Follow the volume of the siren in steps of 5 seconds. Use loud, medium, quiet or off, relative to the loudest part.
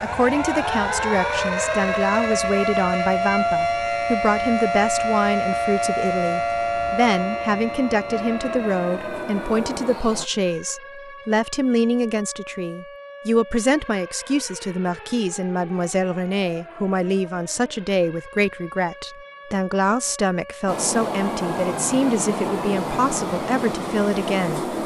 loud, loud, quiet, quiet, quiet.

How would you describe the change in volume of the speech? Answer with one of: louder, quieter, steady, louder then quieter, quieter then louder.
steady.